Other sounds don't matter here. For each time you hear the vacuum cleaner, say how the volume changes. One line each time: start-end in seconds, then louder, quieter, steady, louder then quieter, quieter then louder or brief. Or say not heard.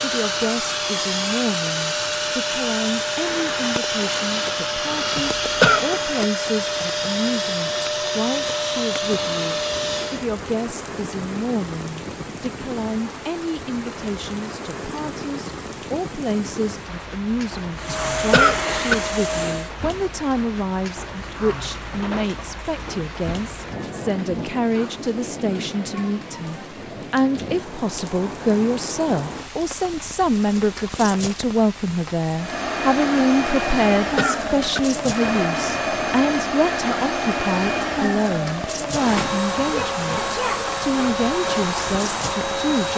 0.0-10.2 steady
17.8-19.7 brief
32.4-42.9 steady.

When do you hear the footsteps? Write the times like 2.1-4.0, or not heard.
not heard.